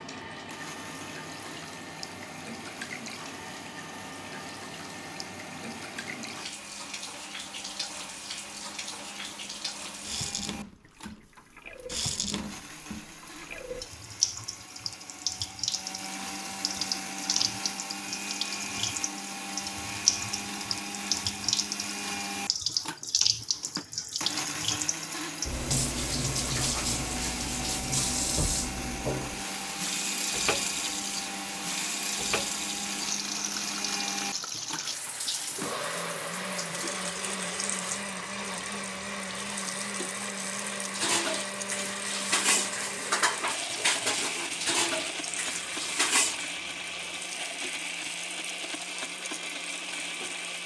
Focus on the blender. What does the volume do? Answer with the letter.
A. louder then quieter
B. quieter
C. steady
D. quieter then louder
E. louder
E.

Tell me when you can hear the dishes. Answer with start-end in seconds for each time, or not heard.
40.9-46.5.